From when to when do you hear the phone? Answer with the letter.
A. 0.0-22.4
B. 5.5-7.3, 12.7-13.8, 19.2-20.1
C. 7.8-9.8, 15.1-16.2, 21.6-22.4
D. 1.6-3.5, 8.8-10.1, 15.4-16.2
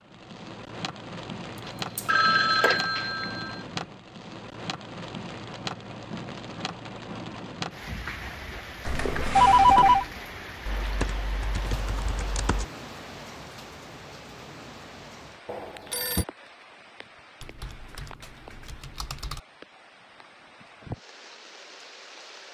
D.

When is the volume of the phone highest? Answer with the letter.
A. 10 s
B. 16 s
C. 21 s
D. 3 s
A.